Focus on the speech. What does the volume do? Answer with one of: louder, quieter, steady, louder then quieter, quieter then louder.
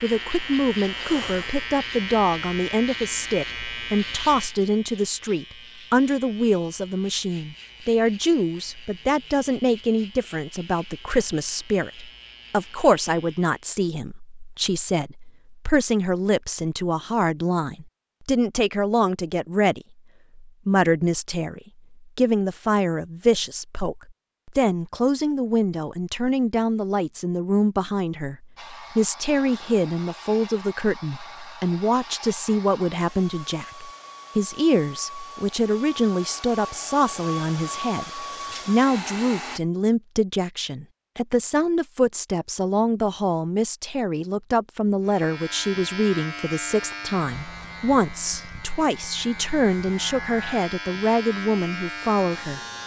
steady.